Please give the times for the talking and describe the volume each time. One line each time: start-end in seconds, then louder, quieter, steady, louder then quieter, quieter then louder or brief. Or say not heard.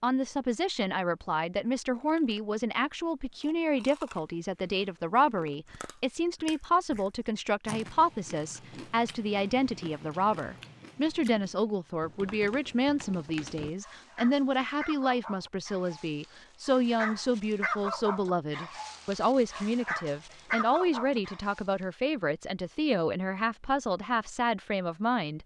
0.0-25.4 steady.